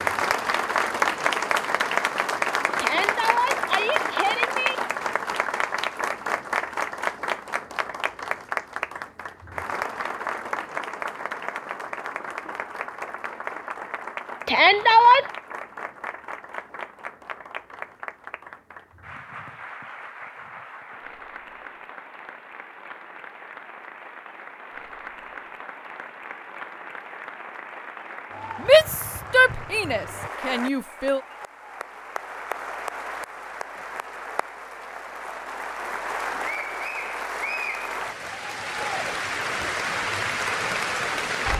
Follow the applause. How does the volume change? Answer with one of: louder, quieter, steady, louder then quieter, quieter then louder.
quieter then louder.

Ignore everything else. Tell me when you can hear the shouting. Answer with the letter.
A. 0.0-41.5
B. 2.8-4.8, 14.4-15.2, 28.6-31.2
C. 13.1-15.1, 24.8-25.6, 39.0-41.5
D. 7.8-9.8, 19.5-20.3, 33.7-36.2
B.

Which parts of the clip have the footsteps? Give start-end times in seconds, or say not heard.
not heard.